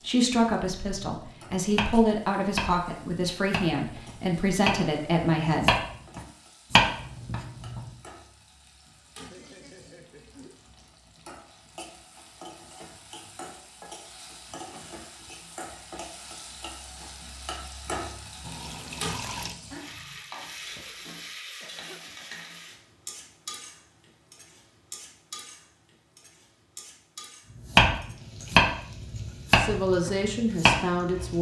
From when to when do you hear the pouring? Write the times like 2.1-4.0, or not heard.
18.4-19.6.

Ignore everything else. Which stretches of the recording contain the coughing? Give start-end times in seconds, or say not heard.
9.2-10.6, 20.6-22.3.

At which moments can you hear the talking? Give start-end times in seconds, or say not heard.
0.0-5.8, 29.6-31.3.